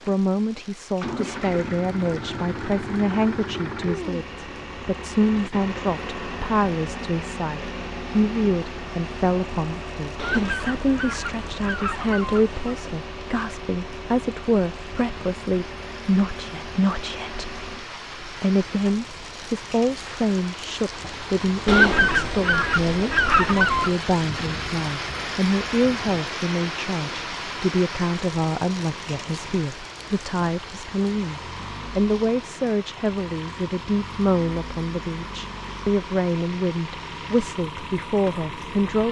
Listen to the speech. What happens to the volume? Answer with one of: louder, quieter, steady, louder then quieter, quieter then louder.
steady.